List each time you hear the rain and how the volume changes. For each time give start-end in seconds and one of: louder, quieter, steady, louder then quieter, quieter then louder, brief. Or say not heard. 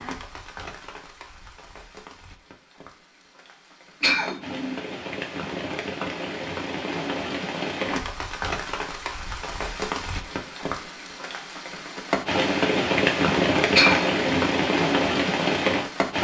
0.0-16.1 louder.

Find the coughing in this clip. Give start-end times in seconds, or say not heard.
4.0-4.8, 13.8-14.5.